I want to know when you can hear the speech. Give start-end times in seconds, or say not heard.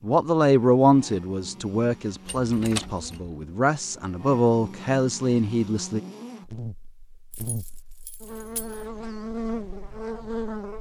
0.0-6.0.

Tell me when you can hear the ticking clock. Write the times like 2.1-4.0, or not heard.
not heard.